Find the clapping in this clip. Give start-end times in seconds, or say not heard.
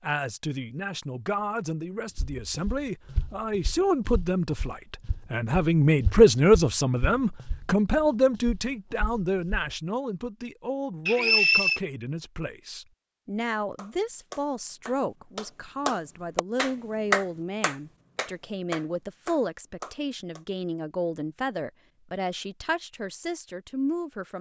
13.8-20.4.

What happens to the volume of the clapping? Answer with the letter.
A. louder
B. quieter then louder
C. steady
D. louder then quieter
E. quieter
D.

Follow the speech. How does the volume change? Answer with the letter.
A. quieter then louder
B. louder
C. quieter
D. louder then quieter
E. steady
D.